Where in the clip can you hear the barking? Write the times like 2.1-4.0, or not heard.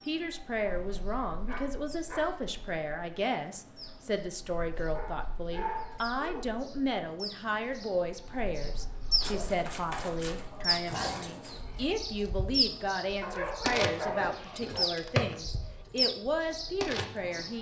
0.6-2.2, 5.0-6.5, 9.2-11.6, 13.2-14.9.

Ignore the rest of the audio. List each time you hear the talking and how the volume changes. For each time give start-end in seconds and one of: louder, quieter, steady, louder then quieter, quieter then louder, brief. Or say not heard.
0.1-17.5 steady.